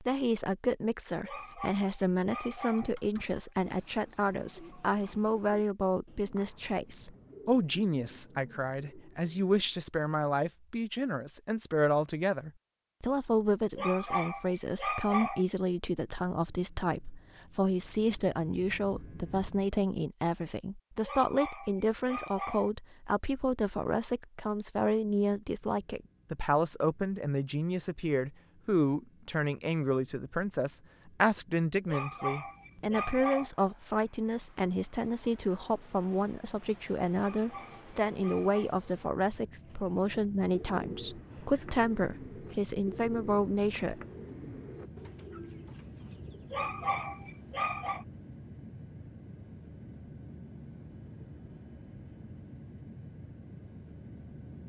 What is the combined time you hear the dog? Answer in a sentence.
The dog can be heard for 10 seconds in total.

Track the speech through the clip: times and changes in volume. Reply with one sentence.
The speech can be heard from 0.0 to 44.0 s, at a steady volume.